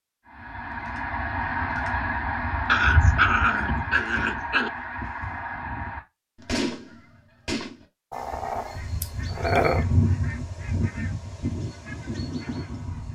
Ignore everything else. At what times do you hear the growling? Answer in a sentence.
The growling can be heard from 2.6 to 4.7 s and from 8.1 to 9.8 s.